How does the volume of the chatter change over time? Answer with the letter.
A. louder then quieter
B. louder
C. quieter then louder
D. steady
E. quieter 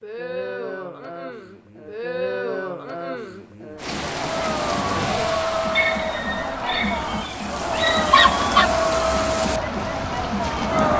B.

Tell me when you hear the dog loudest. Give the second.
8 s.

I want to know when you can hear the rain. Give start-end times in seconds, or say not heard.
3.8-10.9.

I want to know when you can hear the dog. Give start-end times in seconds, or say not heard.
5.8-8.7.